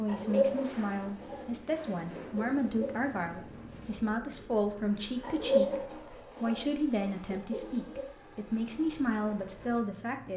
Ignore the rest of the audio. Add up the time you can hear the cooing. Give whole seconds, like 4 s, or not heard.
6 s.